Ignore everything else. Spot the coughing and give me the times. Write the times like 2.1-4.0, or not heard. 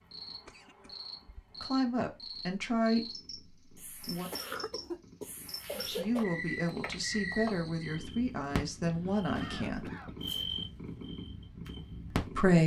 0.5-1.4, 4.3-6.2, 8.8-10.2.